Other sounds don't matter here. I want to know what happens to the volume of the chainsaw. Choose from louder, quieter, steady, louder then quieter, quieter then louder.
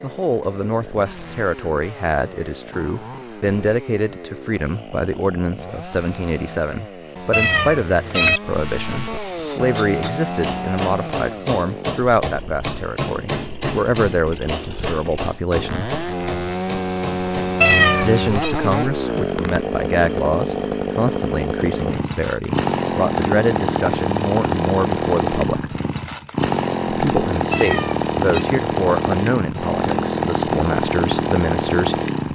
louder.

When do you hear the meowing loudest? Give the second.
18 s.